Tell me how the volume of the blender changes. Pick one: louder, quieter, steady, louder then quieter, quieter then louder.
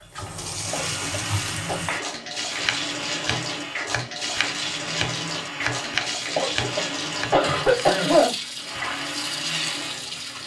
steady.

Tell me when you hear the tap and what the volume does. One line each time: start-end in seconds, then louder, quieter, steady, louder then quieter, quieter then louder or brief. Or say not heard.
0.0-10.4 steady.